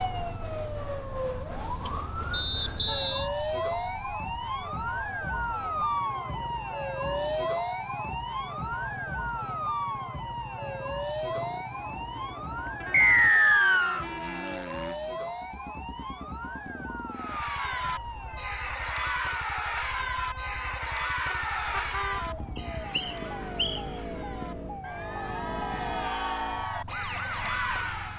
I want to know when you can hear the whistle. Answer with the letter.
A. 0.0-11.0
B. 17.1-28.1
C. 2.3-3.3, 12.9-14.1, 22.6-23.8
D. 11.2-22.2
C.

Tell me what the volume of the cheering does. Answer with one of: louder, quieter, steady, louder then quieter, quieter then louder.
quieter then louder.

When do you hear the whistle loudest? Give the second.
13 s.